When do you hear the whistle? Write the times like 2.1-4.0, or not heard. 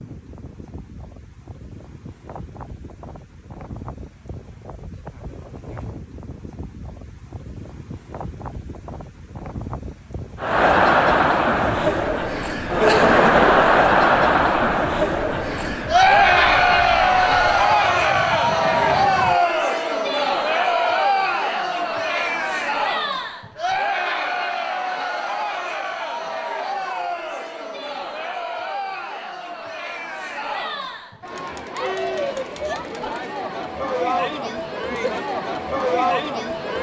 not heard.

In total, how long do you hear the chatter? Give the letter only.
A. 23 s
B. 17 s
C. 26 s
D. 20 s
C.